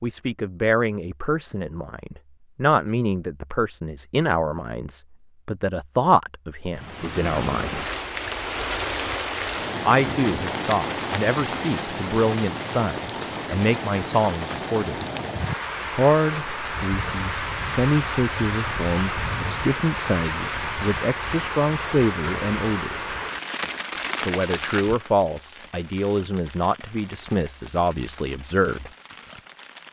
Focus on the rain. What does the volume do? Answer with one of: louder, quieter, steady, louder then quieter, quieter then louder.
quieter.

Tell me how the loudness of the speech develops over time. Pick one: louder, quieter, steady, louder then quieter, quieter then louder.
steady.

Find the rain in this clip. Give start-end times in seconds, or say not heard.
6.8-29.8.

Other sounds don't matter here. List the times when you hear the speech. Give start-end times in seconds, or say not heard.
0.0-7.8, 9.8-15.1, 15.9-23.1, 24.2-28.9.